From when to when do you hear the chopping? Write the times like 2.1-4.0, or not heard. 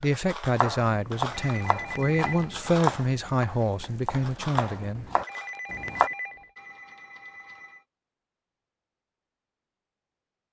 0.6-6.1.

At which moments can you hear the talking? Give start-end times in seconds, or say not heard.
0.0-5.1.